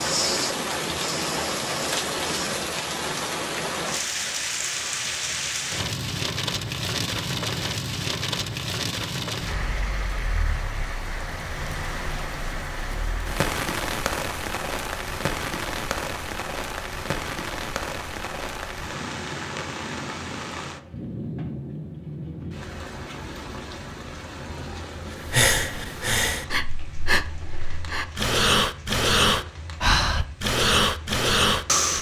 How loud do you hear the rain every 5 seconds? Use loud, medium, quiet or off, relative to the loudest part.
loud, loud, loud, loud, medium, quiet, quiet.